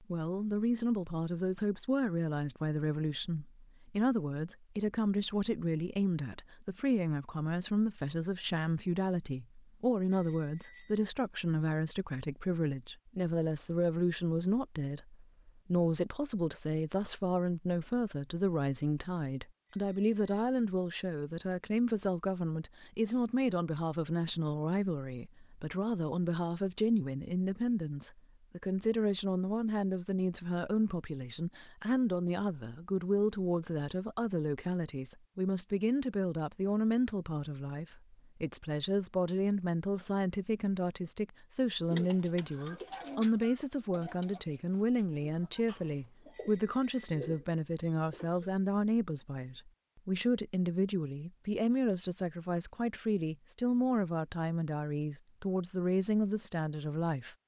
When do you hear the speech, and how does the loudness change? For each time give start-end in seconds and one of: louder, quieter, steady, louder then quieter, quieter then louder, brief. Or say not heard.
0.0-57.4 steady.